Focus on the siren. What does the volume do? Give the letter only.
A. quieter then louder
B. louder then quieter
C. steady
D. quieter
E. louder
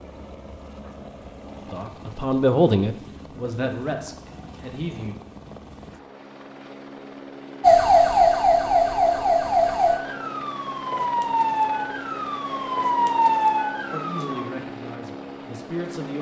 A.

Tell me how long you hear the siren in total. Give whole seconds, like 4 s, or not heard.
7 s.